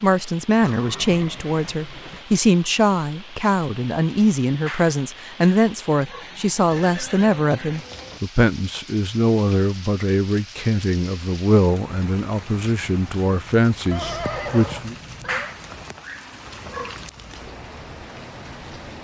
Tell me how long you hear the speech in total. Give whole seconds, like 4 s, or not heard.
15 s.